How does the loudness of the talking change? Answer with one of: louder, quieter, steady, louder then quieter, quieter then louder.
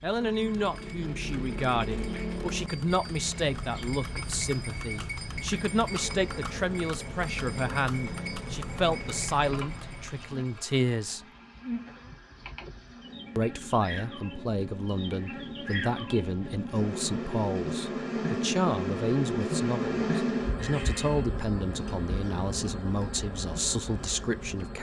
steady.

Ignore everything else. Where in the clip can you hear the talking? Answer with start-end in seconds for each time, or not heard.
0.0-11.2, 13.3-24.7.